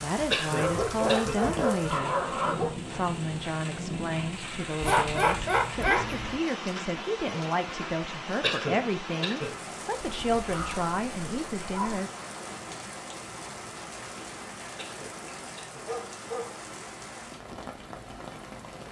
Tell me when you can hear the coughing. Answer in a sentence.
The coughing can be heard from 0.3 to 1.4 s, from 8.4 to 9.6 s and from 14.8 to 15.8 s.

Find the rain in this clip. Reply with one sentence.
The rain can be heard from 0.0 to 18.8 s.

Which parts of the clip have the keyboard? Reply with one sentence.
The keyboard can't be heard in this clip.